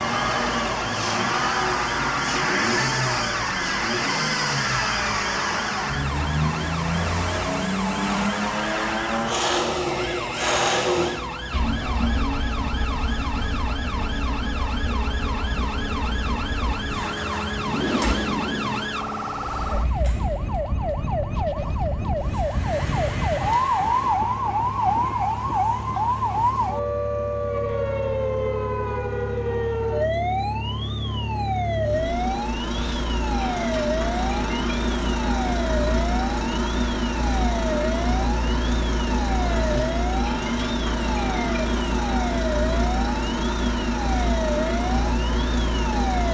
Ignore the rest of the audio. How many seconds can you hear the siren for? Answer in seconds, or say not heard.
46 s.